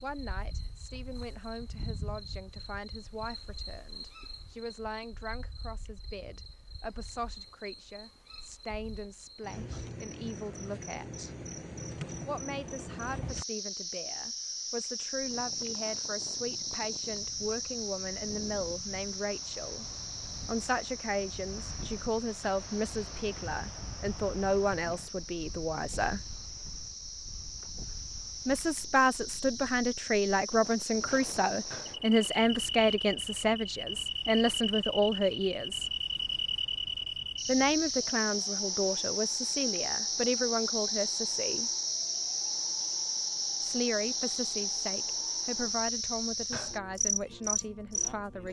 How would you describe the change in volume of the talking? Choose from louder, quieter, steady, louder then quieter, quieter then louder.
louder then quieter.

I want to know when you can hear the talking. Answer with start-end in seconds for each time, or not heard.
0.0-11.3, 12.2-19.9, 20.4-26.2, 28.4-35.9, 37.5-41.7, 43.6-48.4.